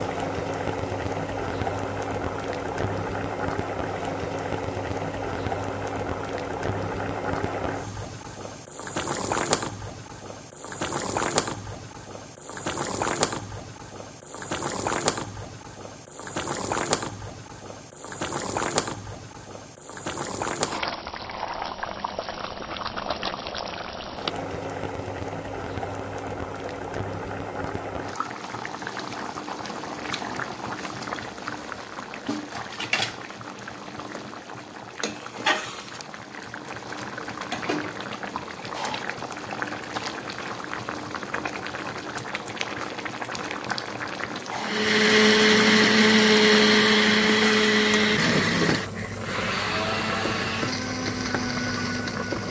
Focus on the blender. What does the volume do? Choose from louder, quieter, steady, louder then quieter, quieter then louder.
quieter.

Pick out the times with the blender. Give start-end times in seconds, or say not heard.
44.5-52.4.